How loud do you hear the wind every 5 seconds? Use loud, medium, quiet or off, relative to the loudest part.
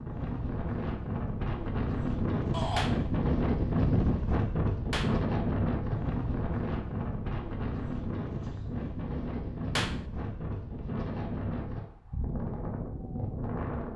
loud, loud, medium.